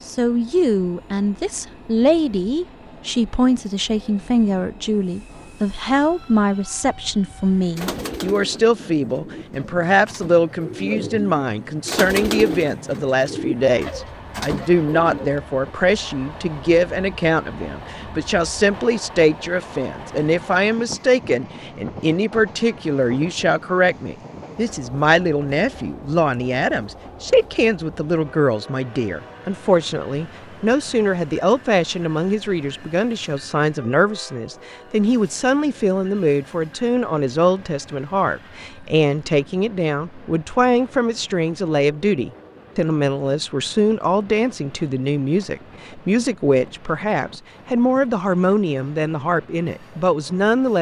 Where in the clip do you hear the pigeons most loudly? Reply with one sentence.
The volume of the pigeons peaks at 12 seconds.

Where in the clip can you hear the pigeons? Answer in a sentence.
You can hear the pigeons from 7.2 to 15.3 s.